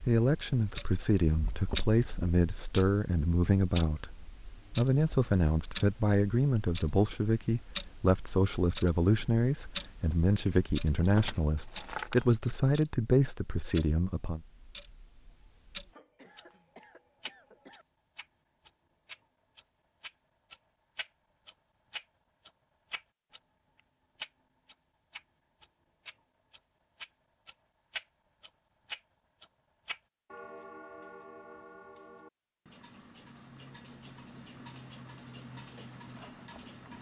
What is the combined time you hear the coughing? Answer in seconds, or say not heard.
2 s.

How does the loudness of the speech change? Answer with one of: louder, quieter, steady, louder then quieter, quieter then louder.
steady.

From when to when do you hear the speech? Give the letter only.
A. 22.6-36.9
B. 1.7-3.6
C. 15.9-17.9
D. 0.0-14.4
D.